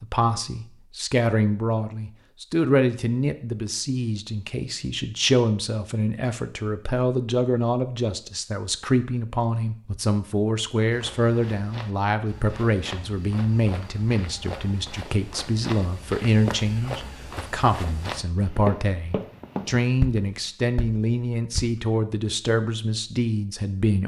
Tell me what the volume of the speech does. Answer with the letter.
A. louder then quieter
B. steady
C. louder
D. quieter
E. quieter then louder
B.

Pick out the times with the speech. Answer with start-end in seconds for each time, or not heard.
0.0-24.0.